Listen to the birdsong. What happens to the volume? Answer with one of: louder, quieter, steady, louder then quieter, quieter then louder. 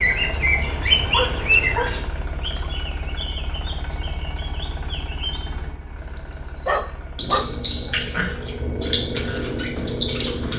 quieter then louder.